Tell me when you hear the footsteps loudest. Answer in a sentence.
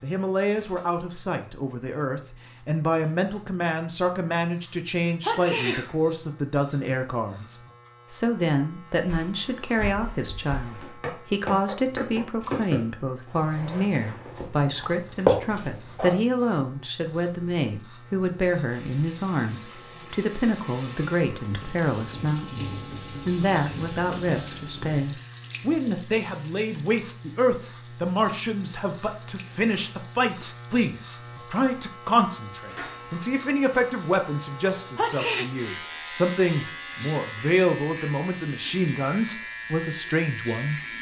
The loudest moment of the footsteps is at 15 seconds.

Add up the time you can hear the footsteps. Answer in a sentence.
You can hear the footsteps for 7 seconds altogether.